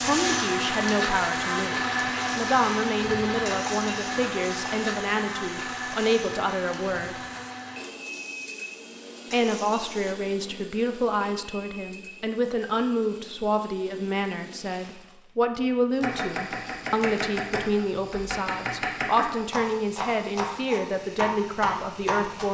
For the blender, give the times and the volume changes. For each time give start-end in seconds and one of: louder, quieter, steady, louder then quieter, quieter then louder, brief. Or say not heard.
0.0-22.4 quieter.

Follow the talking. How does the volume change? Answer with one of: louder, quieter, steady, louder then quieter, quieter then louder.
steady.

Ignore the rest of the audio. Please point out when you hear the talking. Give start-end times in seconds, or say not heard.
0.0-7.2, 9.3-22.4.